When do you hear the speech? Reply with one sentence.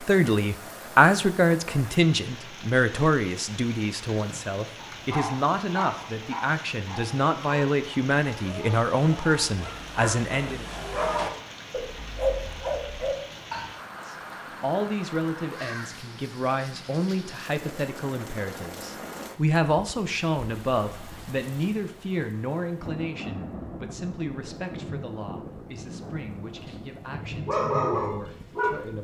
You can hear the speech from 0.0 to 10.7 s and from 14.0 to 28.9 s.